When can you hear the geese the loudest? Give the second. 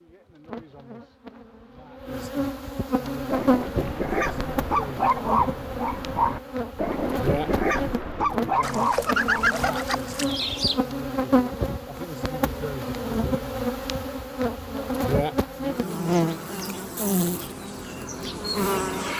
9 s.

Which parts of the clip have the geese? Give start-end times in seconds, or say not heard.
8.6-10.8.